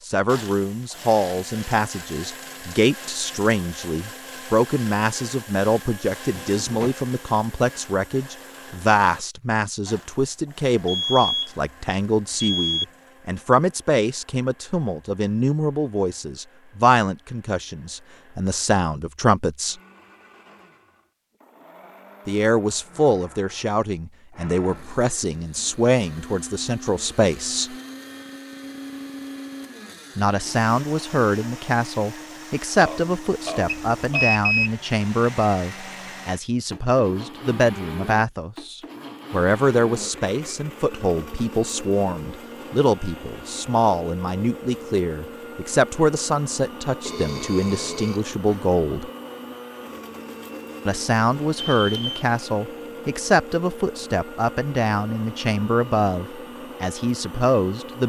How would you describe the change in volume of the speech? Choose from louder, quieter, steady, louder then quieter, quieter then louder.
steady.